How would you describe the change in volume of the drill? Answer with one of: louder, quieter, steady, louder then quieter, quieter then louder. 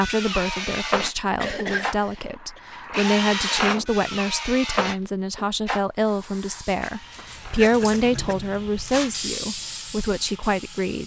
quieter.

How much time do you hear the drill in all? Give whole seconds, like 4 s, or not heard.
11 s.